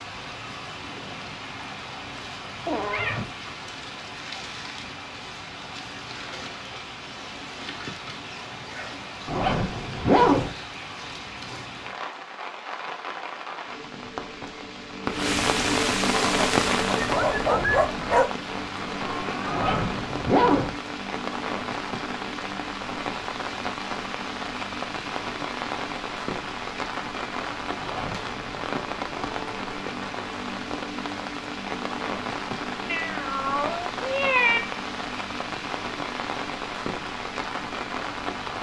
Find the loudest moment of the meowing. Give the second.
34 s.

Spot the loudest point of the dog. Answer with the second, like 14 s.
18 s.